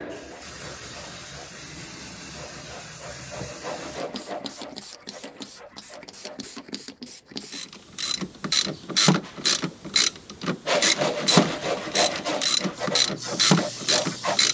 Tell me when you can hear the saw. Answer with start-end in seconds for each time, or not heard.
0.0-6.7, 10.7-14.4.